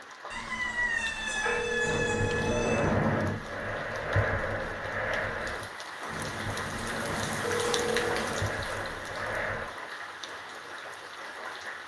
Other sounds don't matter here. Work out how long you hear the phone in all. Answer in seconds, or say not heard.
2 s.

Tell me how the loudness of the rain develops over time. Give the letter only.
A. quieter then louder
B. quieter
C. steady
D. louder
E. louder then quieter
E.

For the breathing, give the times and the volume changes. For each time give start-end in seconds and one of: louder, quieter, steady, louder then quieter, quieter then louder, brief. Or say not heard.
1.4-9.7 quieter.